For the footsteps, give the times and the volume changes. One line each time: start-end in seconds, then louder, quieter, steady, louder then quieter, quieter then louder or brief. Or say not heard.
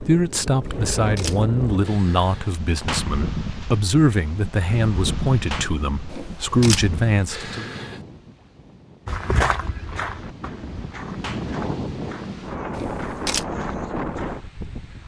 9.1-15.0 quieter.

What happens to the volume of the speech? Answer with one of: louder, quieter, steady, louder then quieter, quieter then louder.
steady.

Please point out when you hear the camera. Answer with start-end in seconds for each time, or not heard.
0.6-2.5, 6.1-8.0, 12.7-13.4.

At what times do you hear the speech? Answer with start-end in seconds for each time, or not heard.
0.0-7.8.